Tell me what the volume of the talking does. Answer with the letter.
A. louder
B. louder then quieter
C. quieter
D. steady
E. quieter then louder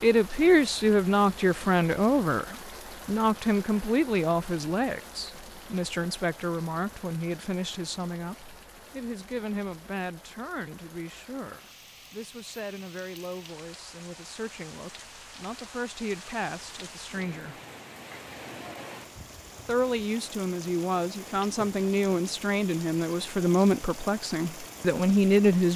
E.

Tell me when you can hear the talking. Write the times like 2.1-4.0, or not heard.
0.0-17.6, 19.6-25.7.